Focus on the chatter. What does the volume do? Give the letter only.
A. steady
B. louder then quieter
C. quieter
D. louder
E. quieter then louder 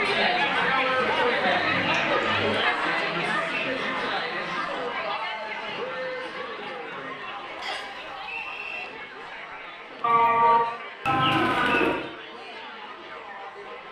C.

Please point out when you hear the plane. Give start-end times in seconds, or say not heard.
not heard.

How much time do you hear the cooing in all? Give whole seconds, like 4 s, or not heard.
4 s.